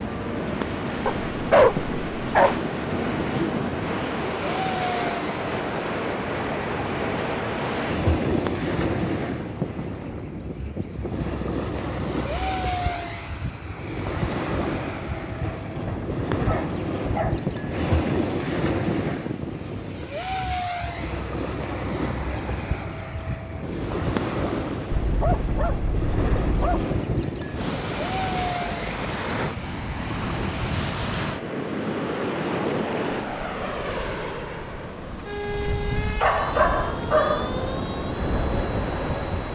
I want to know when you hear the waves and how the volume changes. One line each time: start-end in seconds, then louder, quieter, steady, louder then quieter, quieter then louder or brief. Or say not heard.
0.0-39.4 steady.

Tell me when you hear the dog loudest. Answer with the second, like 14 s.
2 s.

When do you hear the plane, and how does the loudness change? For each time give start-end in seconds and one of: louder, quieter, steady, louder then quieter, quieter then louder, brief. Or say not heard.
0.0-39.4 steady.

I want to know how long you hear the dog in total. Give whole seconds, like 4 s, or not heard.
6 s.